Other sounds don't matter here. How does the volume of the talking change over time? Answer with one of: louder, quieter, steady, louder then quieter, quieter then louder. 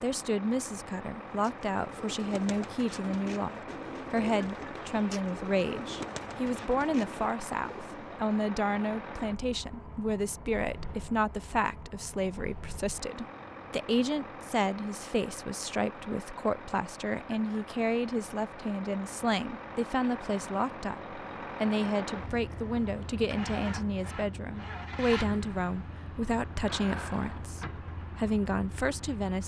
steady.